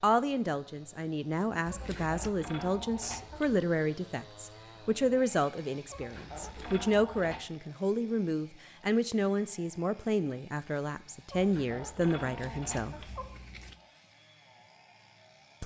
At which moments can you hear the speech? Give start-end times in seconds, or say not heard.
0.0-12.9.